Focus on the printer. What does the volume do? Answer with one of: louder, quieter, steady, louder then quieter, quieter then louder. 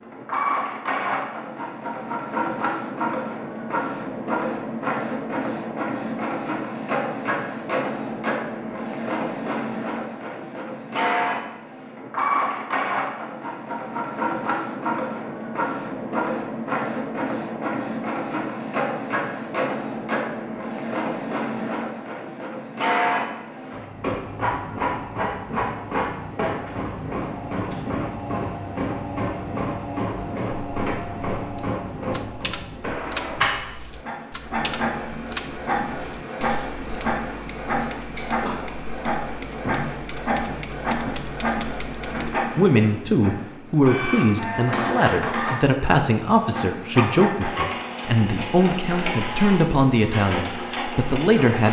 steady.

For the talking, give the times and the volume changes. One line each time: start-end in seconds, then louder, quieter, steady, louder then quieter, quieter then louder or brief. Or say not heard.
42.4-51.6 steady.